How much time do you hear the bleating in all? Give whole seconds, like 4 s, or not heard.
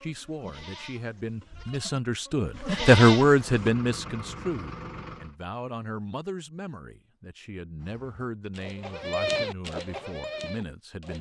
7 s.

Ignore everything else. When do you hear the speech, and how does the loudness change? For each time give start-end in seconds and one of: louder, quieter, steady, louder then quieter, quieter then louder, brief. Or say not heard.
0.0-11.1 louder then quieter.